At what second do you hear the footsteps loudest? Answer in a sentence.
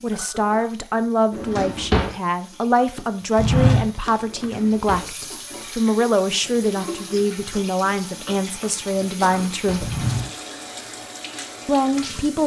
The volume of the footsteps peaks at 4 seconds.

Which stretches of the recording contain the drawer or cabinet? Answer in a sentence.
You can hear the drawer or cabinet from 1.3 to 2.1 s, from 4.2 to 5.1 s and from 9.1 to 9.9 s.